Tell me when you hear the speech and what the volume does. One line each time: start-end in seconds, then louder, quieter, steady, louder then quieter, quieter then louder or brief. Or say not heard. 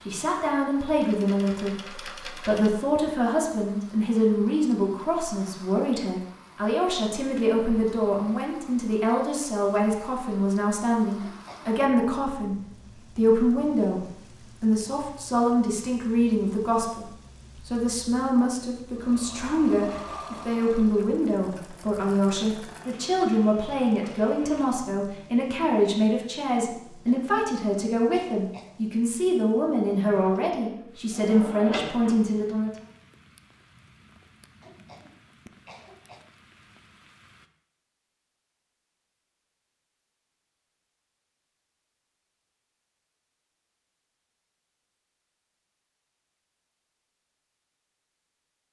0.1-32.7 steady.